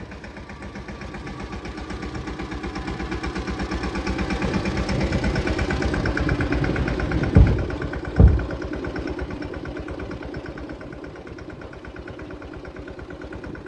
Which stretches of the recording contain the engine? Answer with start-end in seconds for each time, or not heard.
0.0-13.6.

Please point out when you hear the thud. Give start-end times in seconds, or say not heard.
7.3-8.4.